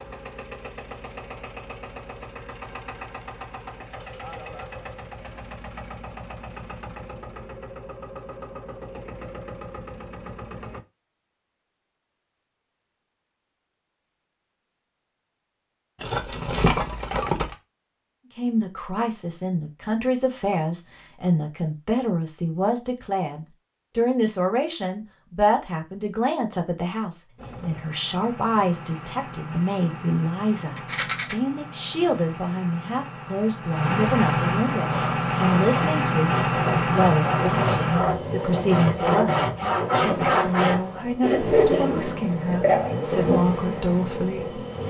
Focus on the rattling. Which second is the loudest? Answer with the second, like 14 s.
17 s.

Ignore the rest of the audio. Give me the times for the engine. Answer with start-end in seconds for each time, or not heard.
0.0-10.8, 27.4-44.8.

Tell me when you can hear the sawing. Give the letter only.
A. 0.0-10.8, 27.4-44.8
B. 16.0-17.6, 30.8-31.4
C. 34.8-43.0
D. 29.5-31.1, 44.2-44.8
C.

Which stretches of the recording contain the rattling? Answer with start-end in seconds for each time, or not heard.
16.0-17.6, 30.8-31.4.